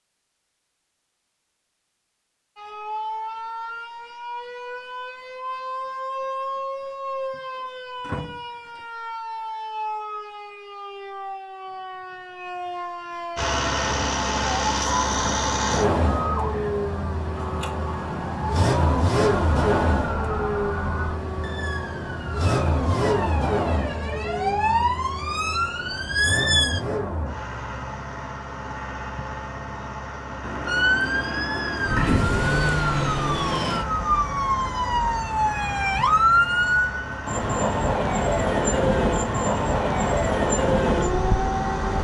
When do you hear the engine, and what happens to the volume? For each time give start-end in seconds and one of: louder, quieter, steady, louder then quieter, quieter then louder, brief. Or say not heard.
13.3-41.9 quieter.